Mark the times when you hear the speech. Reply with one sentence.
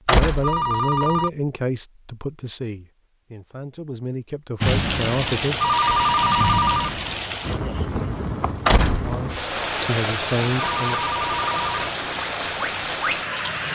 You can hear the speech from 0.1 to 5.7 s and from 9.0 to 11.1 s.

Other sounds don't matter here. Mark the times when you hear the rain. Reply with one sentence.
The rain can be heard from 4.6 to 13.7 s.